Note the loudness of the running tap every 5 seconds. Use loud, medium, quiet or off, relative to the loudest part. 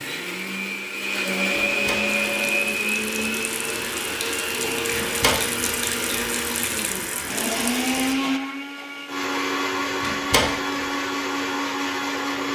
loud, loud, off.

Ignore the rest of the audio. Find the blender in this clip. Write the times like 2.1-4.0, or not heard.
0.0-12.5.